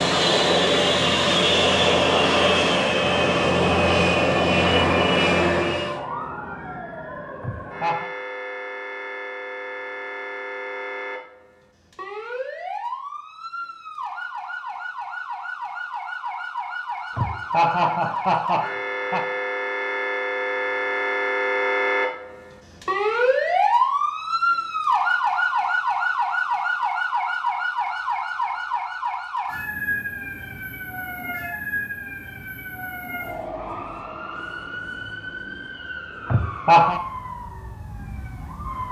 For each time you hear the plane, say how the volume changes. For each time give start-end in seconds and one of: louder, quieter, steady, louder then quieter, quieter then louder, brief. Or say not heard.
0.0-6.0 steady.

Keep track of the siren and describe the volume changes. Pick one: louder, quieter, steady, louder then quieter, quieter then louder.
louder then quieter.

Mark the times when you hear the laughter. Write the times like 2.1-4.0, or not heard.
7.4-8.1, 17.1-19.2, 36.2-37.0.